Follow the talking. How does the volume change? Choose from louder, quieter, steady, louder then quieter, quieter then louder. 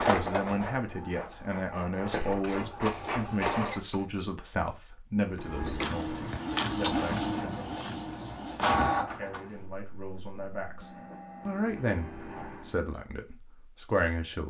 quieter then louder.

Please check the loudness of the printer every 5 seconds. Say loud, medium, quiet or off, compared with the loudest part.
loud, loud, quiet.